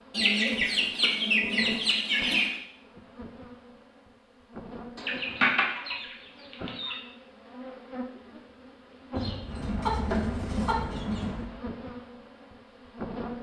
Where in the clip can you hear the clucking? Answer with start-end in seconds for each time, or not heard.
0.1-2.6, 5.0-7.0, 9.2-11.5.